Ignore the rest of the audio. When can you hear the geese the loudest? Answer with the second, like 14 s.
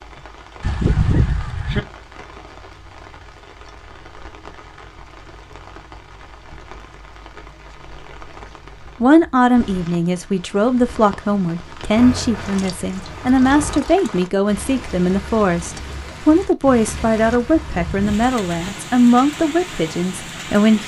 1 s.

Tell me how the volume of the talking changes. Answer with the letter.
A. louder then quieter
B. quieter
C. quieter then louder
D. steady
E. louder
D.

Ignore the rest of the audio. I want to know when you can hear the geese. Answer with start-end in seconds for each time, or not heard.
0.6-1.8, 17.5-18.7.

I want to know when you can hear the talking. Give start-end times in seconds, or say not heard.
9.0-20.8.